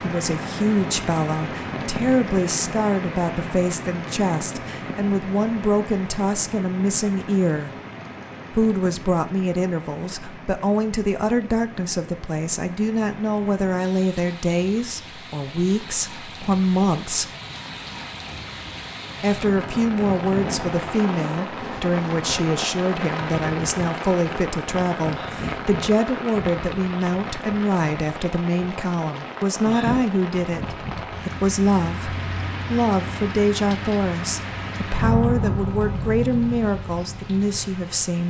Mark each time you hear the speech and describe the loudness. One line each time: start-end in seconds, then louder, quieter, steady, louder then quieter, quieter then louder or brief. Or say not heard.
0.0-7.7 steady
8.5-17.3 steady
19.2-38.2 steady.